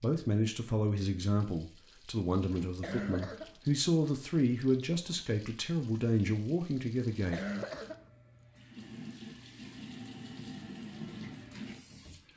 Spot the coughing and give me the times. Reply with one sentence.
You can hear the coughing from 2.6 to 3.5 s and from 7.0 to 8.1 s.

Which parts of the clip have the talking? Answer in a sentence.
The talking can be heard from 0.0 to 7.4 s.